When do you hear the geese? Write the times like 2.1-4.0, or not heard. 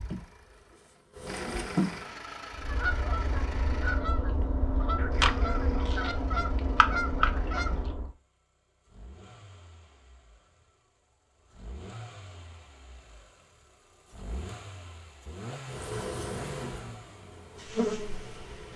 2.5-8.1.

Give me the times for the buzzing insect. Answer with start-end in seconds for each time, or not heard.
0.1-2.0, 15.7-18.3.